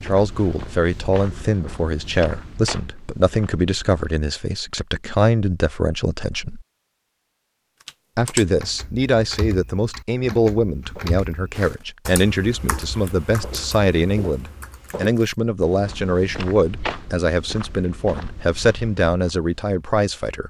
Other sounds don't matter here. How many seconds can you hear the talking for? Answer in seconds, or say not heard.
19 s.